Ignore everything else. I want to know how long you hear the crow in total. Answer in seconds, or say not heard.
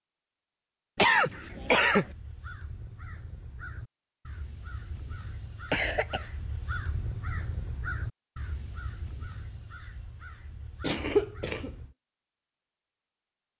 11 s.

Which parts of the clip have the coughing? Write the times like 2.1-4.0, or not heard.
0.9-2.0, 5.7-6.3, 10.8-11.7.